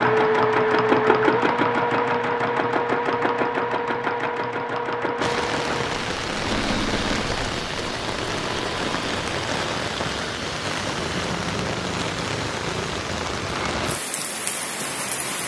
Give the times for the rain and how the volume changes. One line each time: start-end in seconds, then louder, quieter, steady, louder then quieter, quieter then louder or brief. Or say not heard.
5.2-15.4 steady.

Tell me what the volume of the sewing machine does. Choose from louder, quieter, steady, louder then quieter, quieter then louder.
quieter.